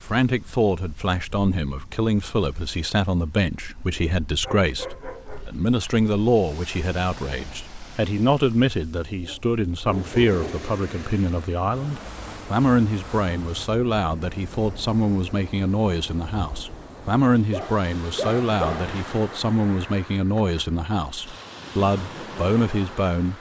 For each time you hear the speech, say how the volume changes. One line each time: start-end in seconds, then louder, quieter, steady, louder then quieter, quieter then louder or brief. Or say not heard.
0.0-23.3 steady.